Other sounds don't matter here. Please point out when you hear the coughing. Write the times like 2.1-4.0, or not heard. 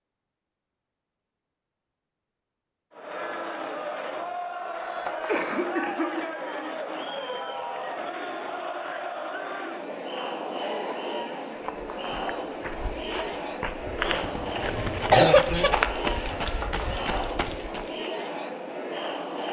5.2-6.3, 14.0-15.7.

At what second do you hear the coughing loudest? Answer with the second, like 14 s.
15 s.